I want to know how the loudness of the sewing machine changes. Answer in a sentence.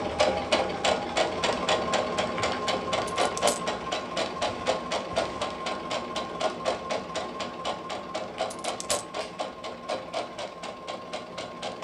The volume of the sewing machine goes down.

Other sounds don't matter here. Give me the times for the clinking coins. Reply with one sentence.
You can hear the clinking coins from 3.0 to 3.6 s and from 8.5 to 9.1 s.